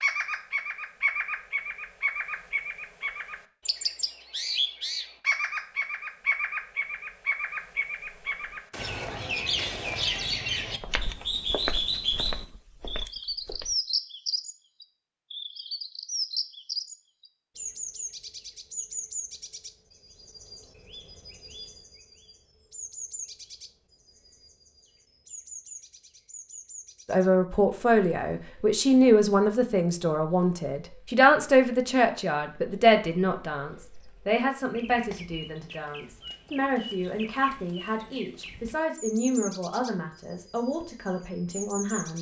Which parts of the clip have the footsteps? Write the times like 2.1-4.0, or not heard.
8.2-13.8.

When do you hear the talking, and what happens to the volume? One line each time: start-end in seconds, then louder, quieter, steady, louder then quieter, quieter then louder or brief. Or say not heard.
27.1-42.1 quieter.